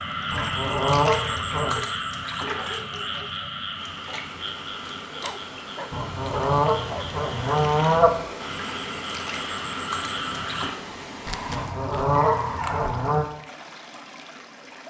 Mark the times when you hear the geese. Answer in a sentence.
You can hear the geese from 0.3 to 1.8 s, from 5.9 to 8.2 s and from 11.4 to 13.2 s.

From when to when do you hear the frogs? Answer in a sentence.
The frogs can be heard from 0.0 to 10.8 s.